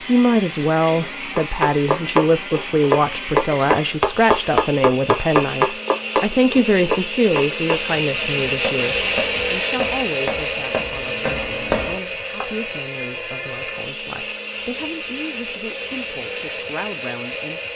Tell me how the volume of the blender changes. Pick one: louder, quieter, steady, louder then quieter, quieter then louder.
louder then quieter.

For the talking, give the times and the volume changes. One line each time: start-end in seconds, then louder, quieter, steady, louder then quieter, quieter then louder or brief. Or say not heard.
0.1-17.7 quieter.